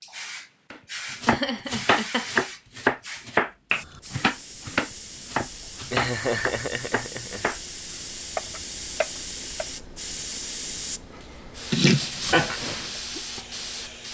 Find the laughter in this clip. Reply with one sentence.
The laughter can be heard from 1.2 to 2.4 s, from 5.9 to 7.5 s and from 11.7 to 12.6 s.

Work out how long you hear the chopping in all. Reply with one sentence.
You can hear the chopping for 9 seconds altogether.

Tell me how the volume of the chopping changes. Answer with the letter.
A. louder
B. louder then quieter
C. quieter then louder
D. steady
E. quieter
E.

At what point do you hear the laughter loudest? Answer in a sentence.
The loudest moment of the laughter is at 12 seconds.